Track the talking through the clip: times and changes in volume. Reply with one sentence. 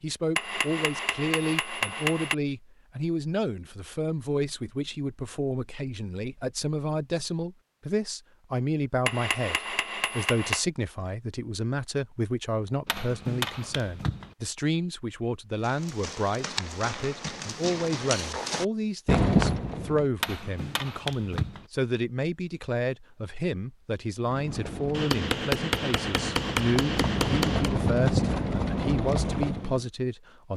You can hear the talking from 0.0 to 30.5 s, at a steady volume.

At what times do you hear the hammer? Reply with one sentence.
You can hear the hammer from 0.3 to 2.4 s, from 9.1 to 10.7 s, from 12.8 to 14.3 s, from 20.2 to 21.6 s and from 24.9 to 27.8 s.